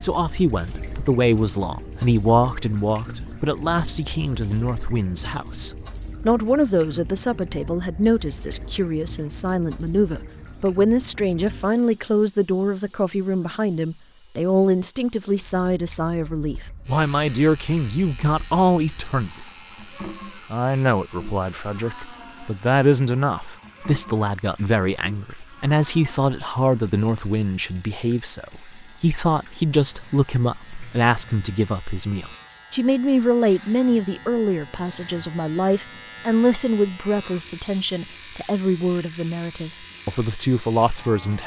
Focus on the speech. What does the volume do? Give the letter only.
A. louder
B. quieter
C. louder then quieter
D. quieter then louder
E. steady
E.